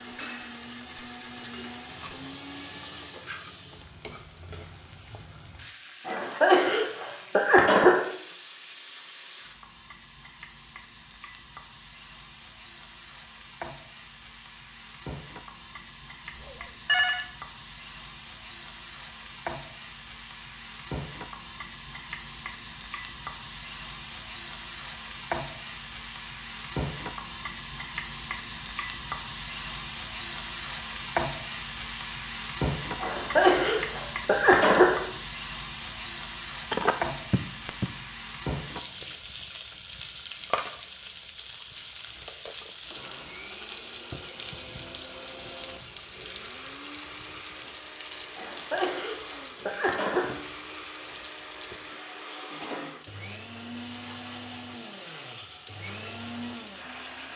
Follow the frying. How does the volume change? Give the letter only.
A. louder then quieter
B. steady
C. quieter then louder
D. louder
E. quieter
A.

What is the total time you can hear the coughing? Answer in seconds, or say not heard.
6 s.